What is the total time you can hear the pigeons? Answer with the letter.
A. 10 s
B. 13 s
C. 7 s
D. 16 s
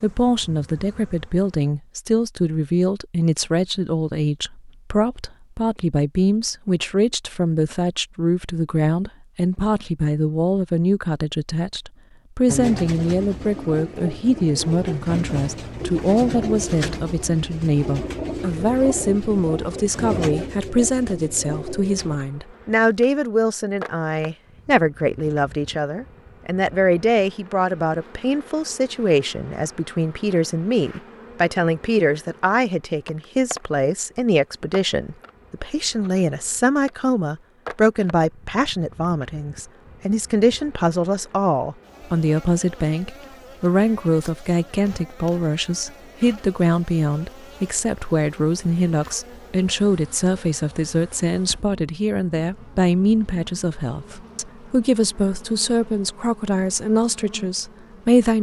A.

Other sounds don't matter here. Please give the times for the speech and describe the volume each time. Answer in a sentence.
The speech can be heard from 0.0 to 58.3 s, at a steady volume.